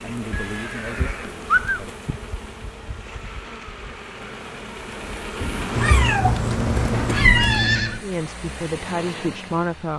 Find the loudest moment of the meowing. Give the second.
7 s.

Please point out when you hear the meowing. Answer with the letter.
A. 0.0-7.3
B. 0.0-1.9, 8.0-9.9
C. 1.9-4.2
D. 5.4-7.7
D.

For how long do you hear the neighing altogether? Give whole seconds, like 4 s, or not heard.
4 s.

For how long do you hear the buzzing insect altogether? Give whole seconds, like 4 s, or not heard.
7 s.